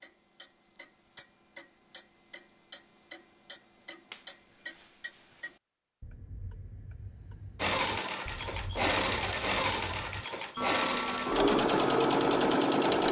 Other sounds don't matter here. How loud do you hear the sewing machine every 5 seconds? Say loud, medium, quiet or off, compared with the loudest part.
off, loud, loud.